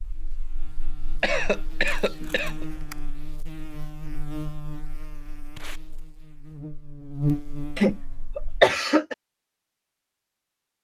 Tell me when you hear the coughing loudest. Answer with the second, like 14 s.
9 s.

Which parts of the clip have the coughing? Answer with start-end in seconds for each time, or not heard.
1.2-2.6, 7.8-9.2.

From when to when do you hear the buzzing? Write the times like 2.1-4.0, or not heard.
0.0-8.7.